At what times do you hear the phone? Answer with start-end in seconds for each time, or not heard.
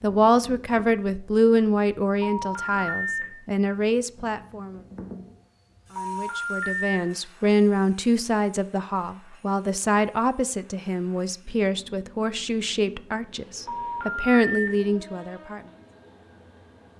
2.2-3.2, 6.0-7.0, 13.7-14.7.